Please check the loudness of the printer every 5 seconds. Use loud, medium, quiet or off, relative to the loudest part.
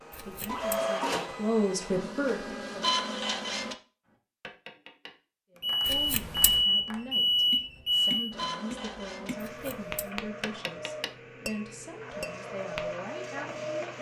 loud, medium, medium.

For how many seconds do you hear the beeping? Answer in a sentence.
You can hear the beeping for 3 seconds altogether.